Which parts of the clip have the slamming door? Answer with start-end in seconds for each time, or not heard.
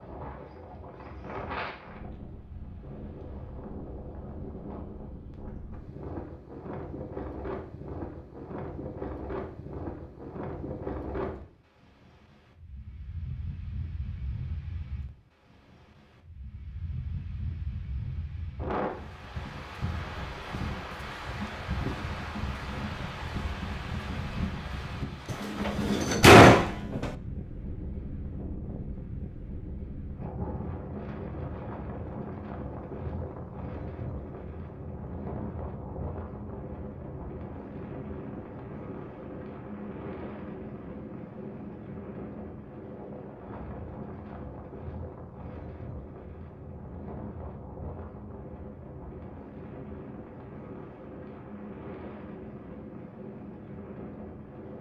25.3-27.1.